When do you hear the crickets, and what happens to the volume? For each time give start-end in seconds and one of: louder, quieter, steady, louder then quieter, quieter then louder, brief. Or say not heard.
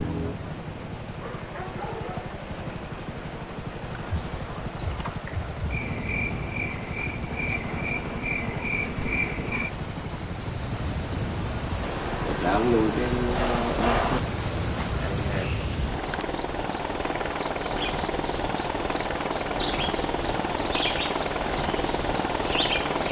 0.0-23.0 quieter then louder.